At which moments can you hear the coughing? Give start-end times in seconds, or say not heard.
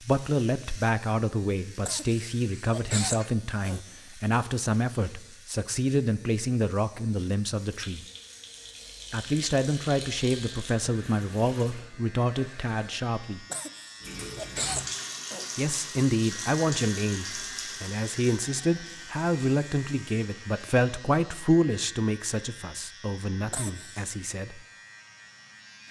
1.8-3.8, 13.5-15.5, 23.5-24.1.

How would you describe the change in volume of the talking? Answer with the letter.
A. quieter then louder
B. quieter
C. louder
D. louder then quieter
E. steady
E.